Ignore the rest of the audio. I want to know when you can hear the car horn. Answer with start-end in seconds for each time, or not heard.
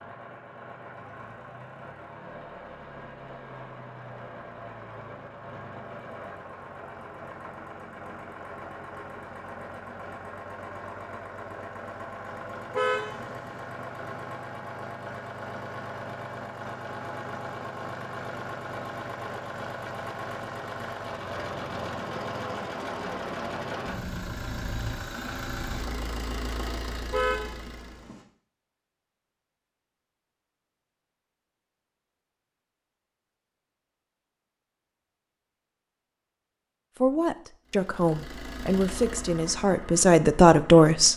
12.7-13.6, 27.1-28.2.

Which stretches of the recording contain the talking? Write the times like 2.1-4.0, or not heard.
37.0-41.1.